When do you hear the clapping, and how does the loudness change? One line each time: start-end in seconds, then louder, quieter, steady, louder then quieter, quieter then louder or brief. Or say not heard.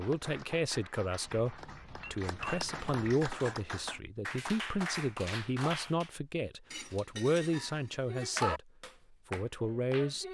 0.0-6.1 louder
8.1-10.2 brief.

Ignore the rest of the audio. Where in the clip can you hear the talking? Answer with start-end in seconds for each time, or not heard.
0.0-8.6, 9.3-10.2.